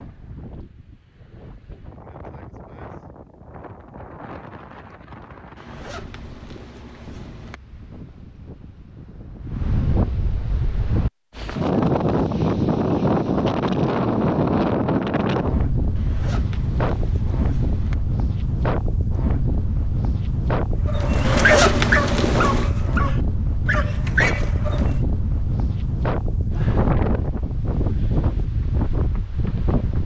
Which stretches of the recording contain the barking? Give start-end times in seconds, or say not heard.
20.9-24.9.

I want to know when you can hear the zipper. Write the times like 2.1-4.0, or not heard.
5.5-7.6, 15.9-17.9, 21.2-22.8.